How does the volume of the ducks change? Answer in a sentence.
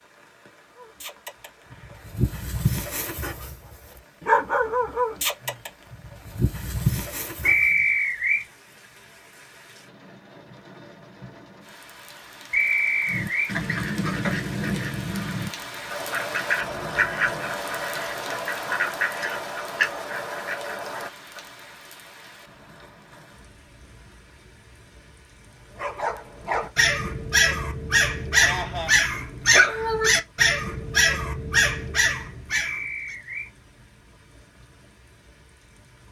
The volume of the ducks stays about the same.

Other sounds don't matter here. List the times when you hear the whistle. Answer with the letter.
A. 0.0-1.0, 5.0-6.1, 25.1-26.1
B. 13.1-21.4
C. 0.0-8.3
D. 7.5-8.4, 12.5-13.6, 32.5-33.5
D.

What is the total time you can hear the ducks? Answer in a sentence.
You can hear the ducks for 8 seconds altogether.